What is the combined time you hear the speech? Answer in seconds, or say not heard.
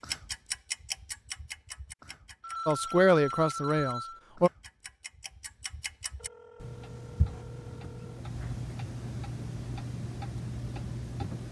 2 s.